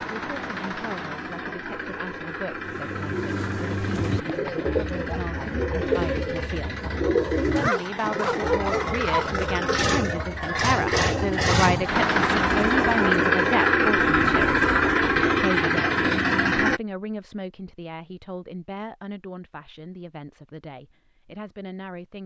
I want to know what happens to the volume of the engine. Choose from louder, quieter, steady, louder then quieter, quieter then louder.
louder.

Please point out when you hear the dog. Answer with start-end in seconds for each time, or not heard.
7.5-9.4.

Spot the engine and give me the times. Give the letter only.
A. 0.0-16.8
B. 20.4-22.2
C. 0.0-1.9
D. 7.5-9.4
A.